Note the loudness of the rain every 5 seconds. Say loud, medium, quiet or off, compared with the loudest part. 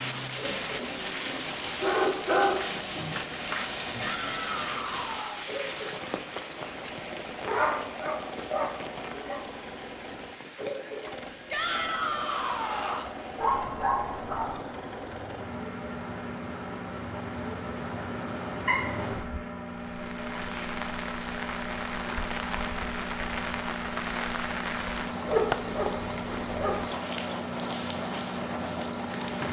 loud, medium, medium, medium, loud, loud.